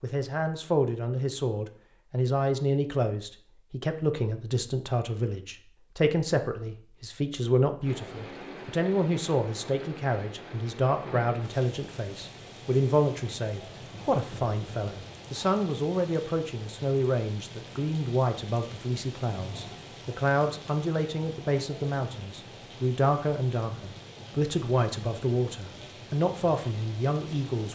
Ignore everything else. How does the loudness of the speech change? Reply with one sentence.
The loudness of the speech stays about the same.